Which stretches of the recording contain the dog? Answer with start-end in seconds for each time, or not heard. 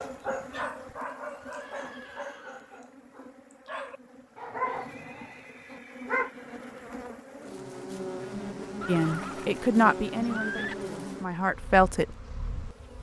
0.0-6.3.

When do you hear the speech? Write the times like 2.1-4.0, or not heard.
8.8-12.1.